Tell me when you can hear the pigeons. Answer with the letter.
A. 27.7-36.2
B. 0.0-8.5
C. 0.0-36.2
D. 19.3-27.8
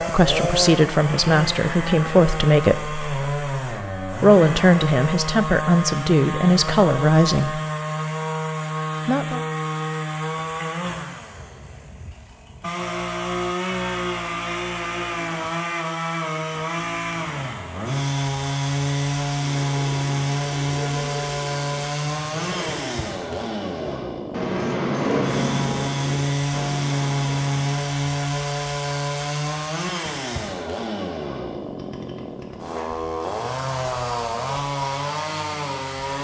D.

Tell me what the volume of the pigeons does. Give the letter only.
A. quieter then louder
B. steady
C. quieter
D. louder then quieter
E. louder
D.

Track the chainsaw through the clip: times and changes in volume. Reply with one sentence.
You can hear the chainsaw from 0.0 to 36.2 s, at a steady volume.